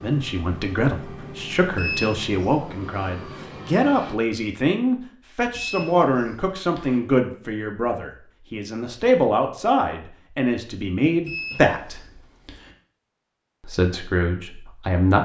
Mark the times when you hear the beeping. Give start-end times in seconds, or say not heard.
1.8-2.5, 5.5-7.0, 11.2-12.7.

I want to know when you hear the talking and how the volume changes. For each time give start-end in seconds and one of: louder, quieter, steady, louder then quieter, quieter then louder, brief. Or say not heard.
0.0-12.0 steady
13.6-15.2 brief.